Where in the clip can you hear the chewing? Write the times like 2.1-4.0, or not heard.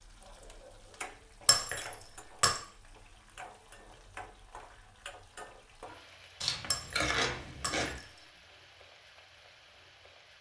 6.4-8.0.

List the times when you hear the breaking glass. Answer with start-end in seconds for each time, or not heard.
1.4-2.6, 6.7-8.1.